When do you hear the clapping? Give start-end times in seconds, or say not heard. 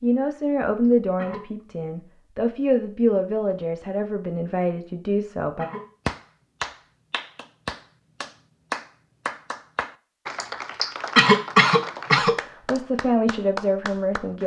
6.0-14.4.